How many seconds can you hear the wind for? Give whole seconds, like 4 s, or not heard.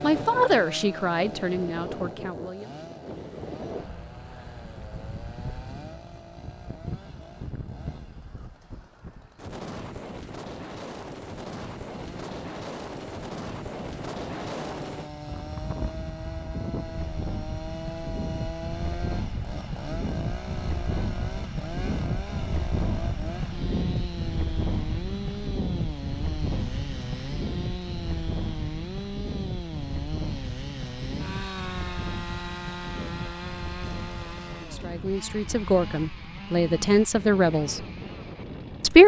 39 s.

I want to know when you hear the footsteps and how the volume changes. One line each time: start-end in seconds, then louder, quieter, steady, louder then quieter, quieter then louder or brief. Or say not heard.
not heard.